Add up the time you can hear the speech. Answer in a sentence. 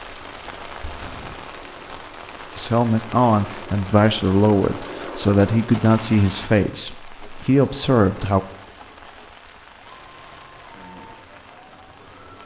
The speech can be heard for 6 seconds in total.